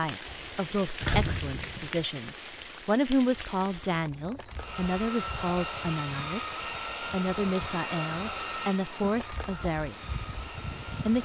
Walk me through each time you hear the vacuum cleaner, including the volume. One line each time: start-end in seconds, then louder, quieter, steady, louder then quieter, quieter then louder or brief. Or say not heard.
4.5-11.1 quieter.